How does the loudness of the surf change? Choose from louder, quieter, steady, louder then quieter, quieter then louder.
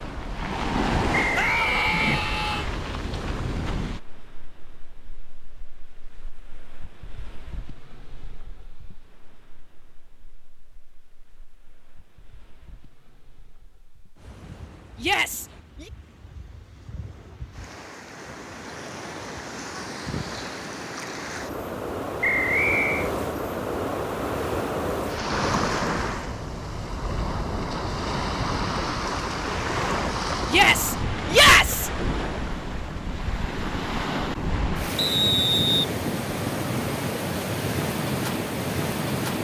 quieter then louder.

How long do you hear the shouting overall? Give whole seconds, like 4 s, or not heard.
4 s.